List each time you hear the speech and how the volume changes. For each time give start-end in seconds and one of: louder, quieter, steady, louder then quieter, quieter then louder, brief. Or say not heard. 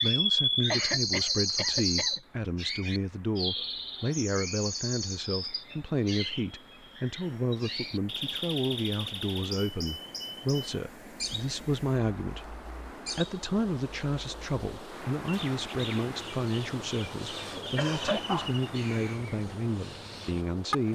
0.0-20.8 steady.